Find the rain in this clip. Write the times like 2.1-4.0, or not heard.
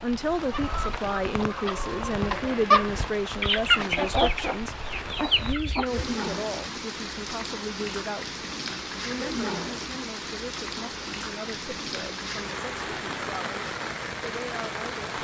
0.0-15.1.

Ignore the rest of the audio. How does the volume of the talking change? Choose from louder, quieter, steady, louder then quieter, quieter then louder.
quieter.